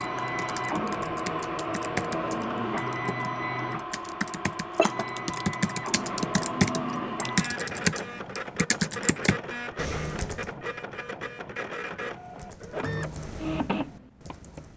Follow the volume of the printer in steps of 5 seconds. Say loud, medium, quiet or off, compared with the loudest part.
loud, loud, medium.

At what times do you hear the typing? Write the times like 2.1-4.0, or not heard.
0.0-10.5, 12.1-14.7.